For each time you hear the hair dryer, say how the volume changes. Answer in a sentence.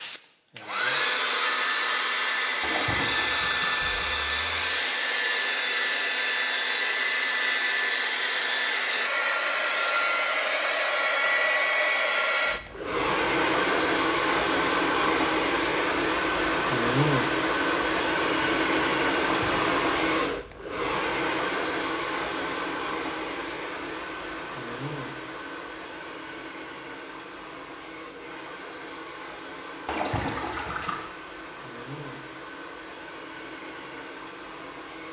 You can hear the hair dryer from 0.0 to 35.0 s, getting quieter.